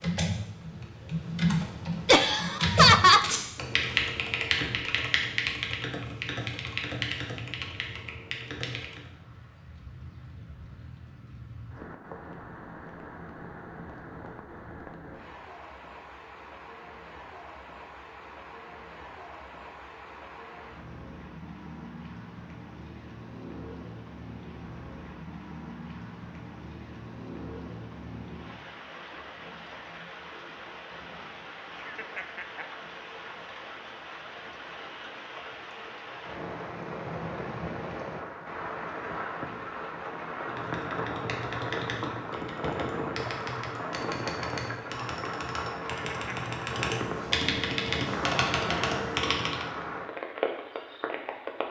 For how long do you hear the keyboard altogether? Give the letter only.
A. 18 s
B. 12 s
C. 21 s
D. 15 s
A.